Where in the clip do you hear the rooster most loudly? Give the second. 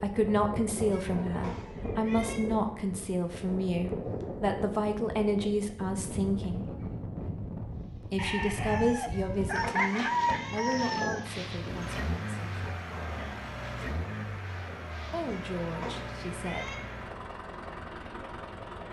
10 s.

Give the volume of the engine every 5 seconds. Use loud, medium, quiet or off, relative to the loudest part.
off, off, loud, loud.